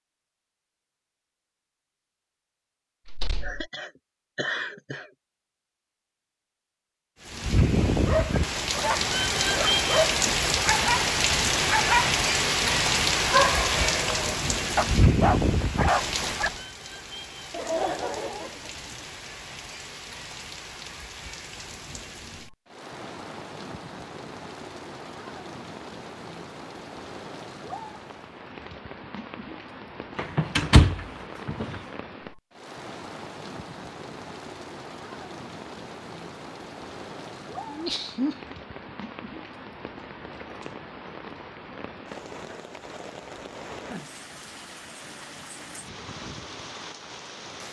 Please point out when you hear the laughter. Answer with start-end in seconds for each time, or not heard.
3.4-5.1, 17.5-19.0, 37.6-38.5.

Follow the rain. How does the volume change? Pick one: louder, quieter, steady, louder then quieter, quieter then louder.
quieter.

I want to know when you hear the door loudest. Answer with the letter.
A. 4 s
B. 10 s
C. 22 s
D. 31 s
D.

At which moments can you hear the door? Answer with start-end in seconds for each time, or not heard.
3.0-3.7, 30.1-31.7.